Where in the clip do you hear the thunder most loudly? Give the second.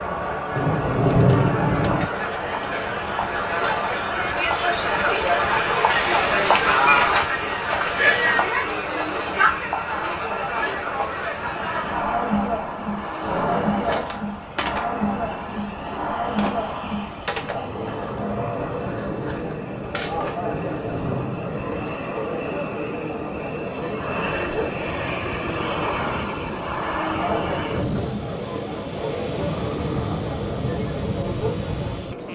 1 s.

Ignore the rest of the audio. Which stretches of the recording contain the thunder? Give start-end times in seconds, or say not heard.
0.6-2.0, 20.4-21.9.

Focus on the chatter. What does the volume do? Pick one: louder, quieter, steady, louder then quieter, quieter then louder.
quieter.